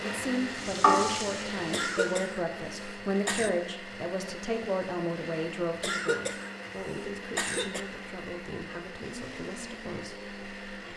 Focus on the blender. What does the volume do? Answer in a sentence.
The loudness of the blender stays about the same.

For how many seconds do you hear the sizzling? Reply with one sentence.
You can hear the sizzling for 2 seconds altogether.